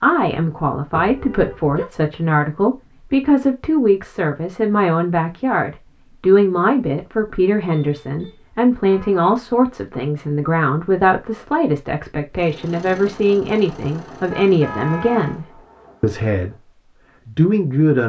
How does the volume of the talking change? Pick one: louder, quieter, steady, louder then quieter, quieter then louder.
steady.